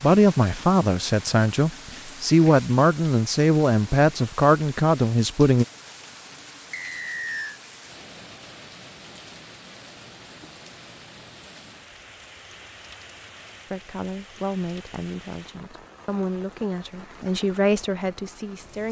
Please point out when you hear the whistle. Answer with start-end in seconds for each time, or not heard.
6.7-7.6.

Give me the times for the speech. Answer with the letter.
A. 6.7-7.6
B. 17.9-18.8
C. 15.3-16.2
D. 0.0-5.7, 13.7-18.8
D.